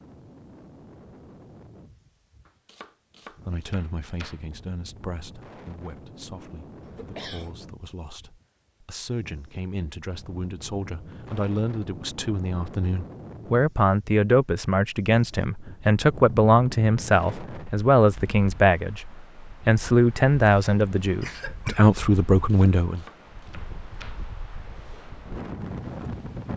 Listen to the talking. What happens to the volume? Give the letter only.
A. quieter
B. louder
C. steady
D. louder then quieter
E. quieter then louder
B.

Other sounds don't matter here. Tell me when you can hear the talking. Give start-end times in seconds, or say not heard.
3.5-23.0.